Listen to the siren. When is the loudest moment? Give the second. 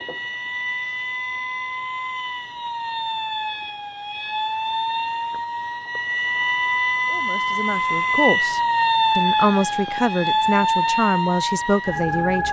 9 s.